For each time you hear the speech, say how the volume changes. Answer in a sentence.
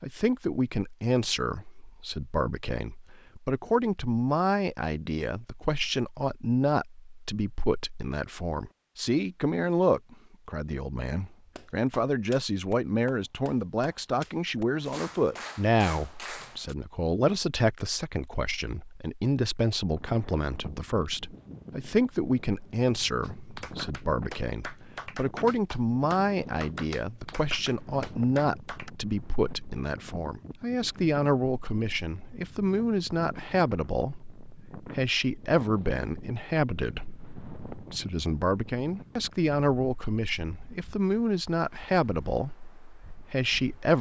The speech can be heard from 0.0 to 43.9 s, at a steady volume.